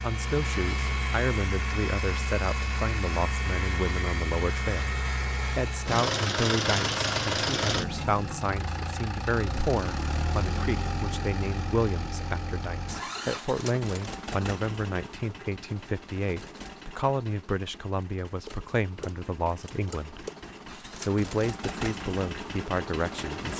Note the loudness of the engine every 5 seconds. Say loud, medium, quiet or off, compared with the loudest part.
loud, loud, medium, quiet, medium.